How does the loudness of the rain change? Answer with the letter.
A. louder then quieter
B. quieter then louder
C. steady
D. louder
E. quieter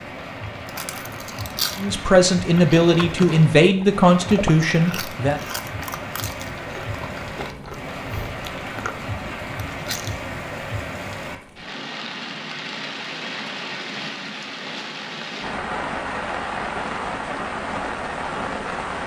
D.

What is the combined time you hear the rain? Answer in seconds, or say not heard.
19 s.